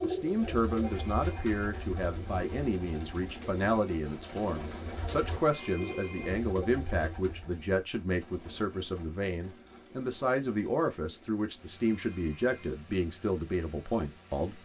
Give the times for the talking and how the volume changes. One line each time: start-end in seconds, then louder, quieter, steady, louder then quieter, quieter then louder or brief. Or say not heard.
0.0-14.6 steady.